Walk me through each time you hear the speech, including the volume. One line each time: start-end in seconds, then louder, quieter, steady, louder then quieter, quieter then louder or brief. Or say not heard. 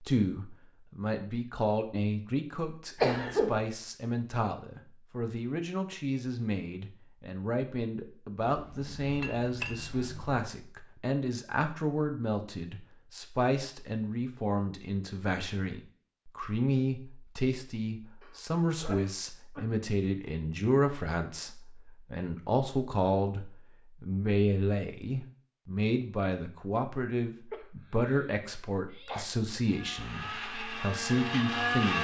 0.0-32.0 steady.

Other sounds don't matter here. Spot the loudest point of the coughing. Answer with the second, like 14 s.
3 s.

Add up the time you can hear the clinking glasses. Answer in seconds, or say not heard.
2 s.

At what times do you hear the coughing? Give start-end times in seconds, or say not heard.
3.0-3.5, 18.2-19.6, 27.5-29.2.